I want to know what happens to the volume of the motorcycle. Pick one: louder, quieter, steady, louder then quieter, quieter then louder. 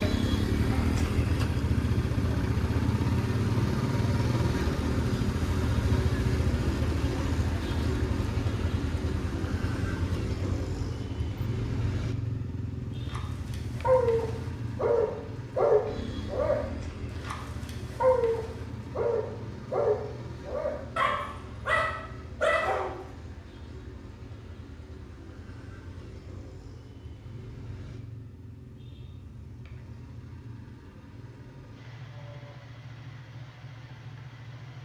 quieter.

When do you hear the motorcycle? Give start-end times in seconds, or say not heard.
0.0-34.8.